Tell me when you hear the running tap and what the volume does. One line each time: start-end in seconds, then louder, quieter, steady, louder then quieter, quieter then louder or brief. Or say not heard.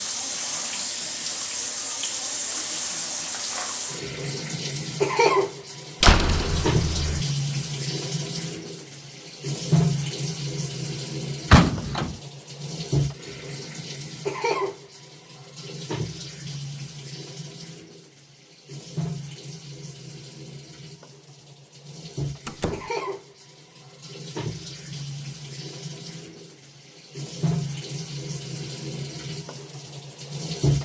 0.0-30.8 quieter.